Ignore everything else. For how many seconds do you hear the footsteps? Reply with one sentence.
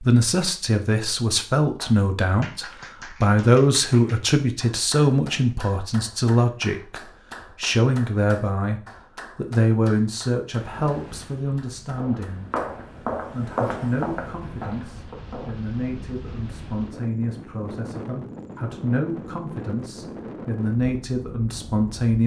The footsteps can be heard for 4 seconds in total.